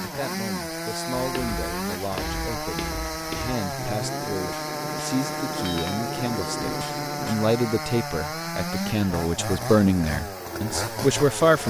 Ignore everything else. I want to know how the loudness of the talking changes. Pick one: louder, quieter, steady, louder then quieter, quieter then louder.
louder.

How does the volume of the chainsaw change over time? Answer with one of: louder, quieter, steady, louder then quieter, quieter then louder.
steady.